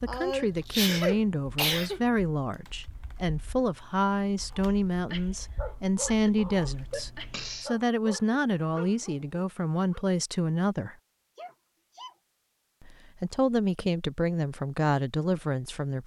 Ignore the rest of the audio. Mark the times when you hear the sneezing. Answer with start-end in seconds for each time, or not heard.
0.1-2.0, 6.9-7.7, 11.3-12.2.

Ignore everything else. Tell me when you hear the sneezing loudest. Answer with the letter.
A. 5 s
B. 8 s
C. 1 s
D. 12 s
C.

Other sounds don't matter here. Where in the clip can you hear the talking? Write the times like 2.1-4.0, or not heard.
0.0-10.9, 12.8-16.0.